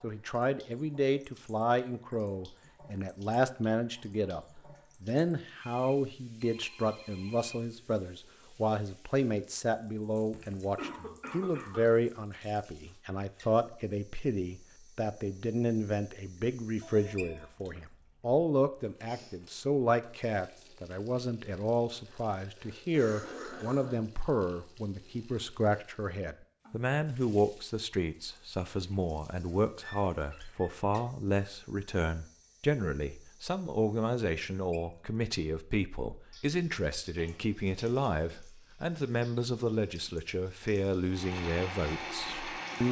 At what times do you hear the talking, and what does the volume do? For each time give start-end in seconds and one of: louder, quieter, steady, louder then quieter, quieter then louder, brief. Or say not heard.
0.0-42.8 steady.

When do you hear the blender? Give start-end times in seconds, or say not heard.
41.1-42.8.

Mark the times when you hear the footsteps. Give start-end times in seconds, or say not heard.
not heard.